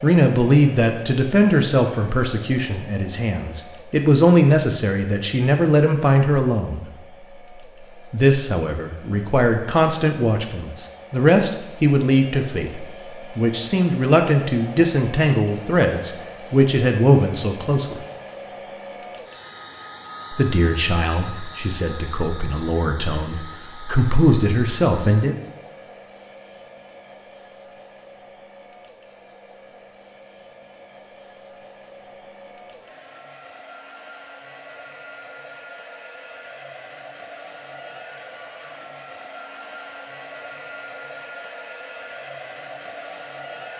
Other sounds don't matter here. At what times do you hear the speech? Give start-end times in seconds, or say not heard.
0.0-6.8, 8.1-18.1, 20.3-25.4.